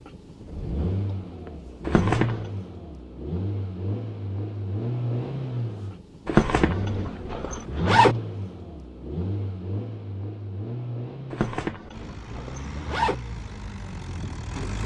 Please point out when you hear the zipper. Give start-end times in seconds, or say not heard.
1.9-2.5, 6.2-8.2, 11.3-13.2.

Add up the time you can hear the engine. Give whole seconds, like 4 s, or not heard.
15 s.